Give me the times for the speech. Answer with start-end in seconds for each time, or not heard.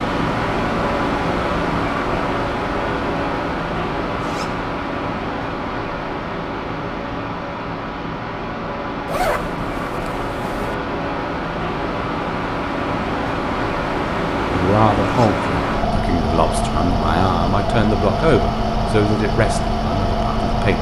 14.5-20.7.